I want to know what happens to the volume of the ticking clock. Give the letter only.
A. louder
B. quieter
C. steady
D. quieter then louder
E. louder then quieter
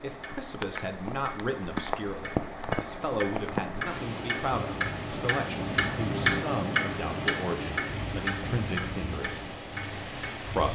E.